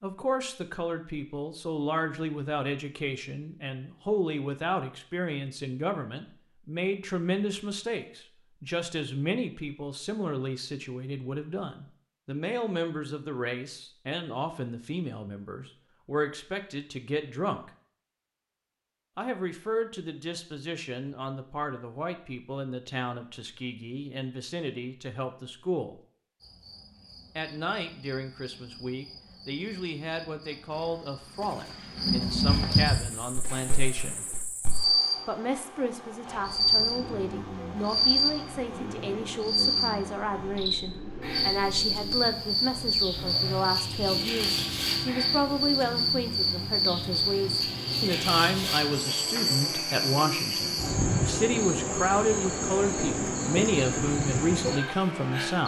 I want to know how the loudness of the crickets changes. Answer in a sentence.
The volume of the crickets goes up.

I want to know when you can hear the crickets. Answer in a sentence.
You can hear the crickets from 26.4 to 55.6 s.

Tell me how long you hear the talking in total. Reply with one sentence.
The talking can be heard for 52 seconds in total.